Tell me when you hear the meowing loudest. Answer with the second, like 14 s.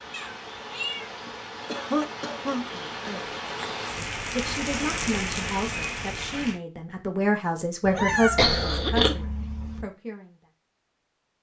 8 s.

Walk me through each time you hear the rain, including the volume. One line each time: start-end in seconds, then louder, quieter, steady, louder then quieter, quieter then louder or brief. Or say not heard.
0.0-6.6 louder.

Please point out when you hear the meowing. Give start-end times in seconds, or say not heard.
0.1-1.1, 7.8-9.8.